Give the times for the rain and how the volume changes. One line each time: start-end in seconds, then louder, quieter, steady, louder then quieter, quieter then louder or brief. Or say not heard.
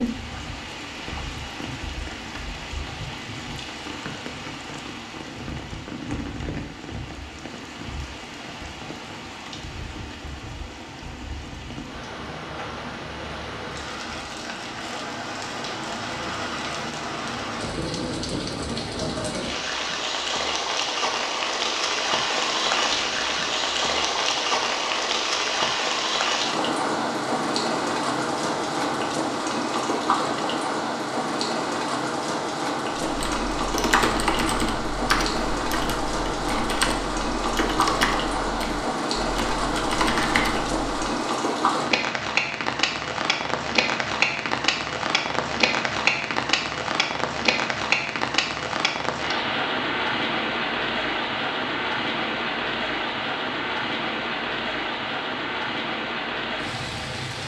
0.0-57.4 louder.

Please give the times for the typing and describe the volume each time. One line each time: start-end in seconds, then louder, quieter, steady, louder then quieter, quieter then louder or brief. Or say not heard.
33.0-41.0 steady.